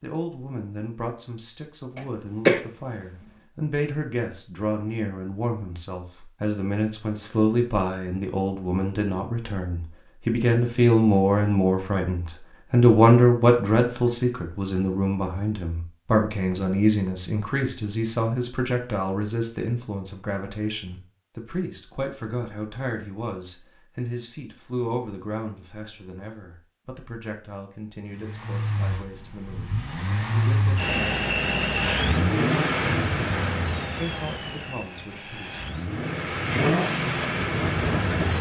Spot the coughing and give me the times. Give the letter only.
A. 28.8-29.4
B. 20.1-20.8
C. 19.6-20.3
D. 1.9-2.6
D.